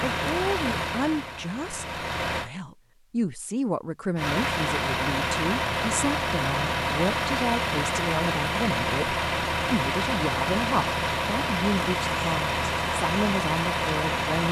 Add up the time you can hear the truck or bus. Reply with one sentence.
You can hear the truck or bus for 13 seconds altogether.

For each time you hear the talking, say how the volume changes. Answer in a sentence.
You can hear the talking from 0.0 to 14.4 s, at a steady volume.